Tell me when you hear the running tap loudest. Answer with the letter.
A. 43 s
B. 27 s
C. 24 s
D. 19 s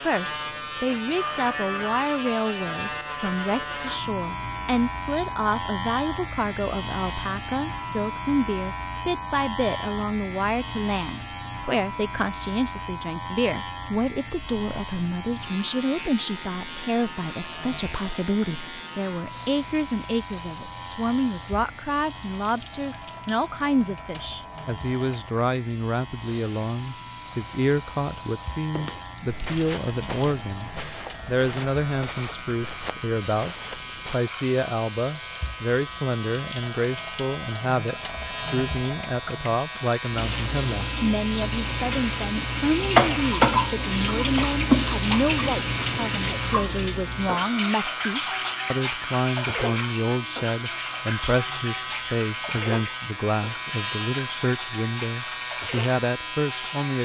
A.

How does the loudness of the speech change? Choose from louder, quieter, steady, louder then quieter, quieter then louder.
steady.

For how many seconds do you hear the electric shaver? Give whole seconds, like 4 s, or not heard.
57 s.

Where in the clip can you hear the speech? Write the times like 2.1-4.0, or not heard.
0.1-57.0.